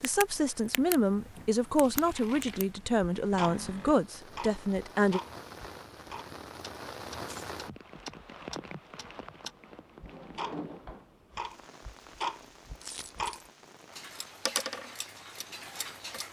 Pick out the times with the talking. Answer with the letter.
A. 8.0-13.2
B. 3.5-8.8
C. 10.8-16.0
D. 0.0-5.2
D.